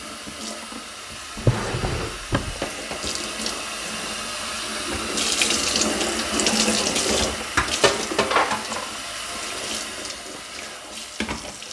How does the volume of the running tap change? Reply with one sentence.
The loudness of the running tap goes up, then down.